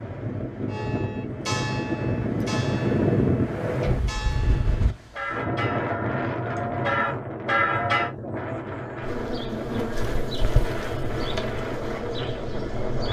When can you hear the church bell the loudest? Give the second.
8 s.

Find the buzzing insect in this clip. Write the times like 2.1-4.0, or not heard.
9.0-13.0.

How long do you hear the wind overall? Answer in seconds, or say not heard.
13 s.